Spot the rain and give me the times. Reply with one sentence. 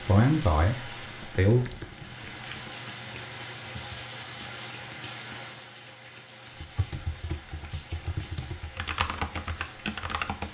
You can hear the rain from 0.0 to 10.4 s.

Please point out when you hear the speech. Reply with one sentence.
The speech can be heard from 0.0 to 1.6 s.